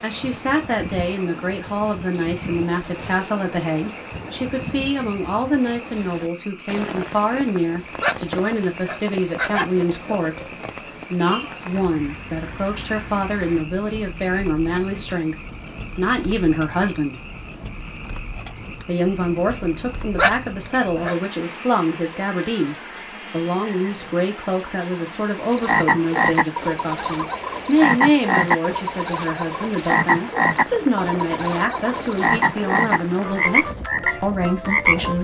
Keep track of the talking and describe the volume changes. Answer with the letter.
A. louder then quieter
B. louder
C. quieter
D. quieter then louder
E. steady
E.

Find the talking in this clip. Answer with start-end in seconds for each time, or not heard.
0.0-17.1, 18.9-35.1.